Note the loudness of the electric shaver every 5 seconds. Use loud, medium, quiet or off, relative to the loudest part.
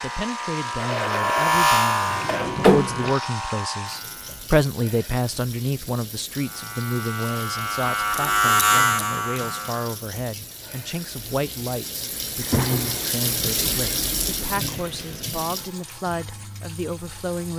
loud, loud, off, off.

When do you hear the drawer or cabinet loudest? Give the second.
3 s.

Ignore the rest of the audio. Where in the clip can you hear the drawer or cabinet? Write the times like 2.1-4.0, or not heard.
1.4-3.1, 12.4-13.2.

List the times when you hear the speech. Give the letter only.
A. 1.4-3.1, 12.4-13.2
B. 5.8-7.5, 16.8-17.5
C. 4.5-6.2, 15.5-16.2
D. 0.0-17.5
D.